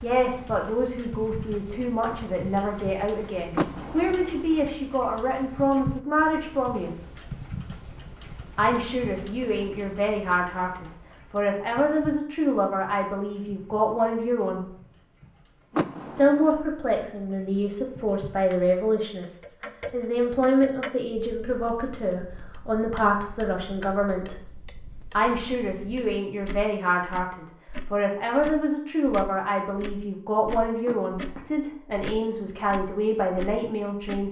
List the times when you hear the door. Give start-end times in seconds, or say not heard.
3.5-4.5, 15.7-16.6, 30.9-31.7.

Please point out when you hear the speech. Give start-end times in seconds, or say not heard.
0.0-6.9, 8.6-14.7, 16.1-24.4, 25.1-34.2.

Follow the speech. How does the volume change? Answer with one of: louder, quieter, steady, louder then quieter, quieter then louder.
steady.